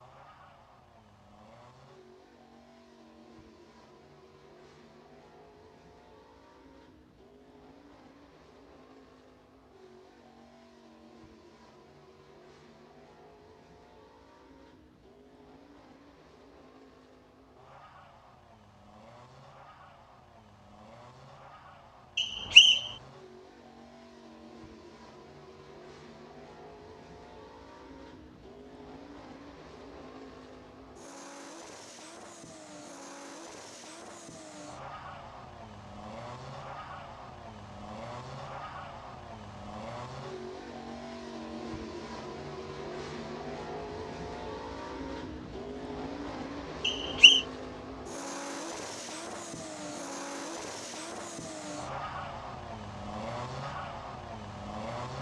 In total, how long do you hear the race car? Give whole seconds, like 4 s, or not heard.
55 s.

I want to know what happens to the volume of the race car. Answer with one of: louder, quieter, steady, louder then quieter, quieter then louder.
louder.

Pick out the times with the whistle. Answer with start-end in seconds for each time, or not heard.
22.1-22.9, 46.9-47.5.